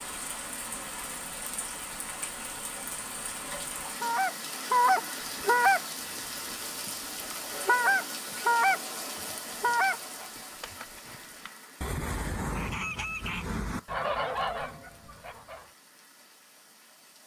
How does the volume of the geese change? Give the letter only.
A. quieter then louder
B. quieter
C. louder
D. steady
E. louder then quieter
B.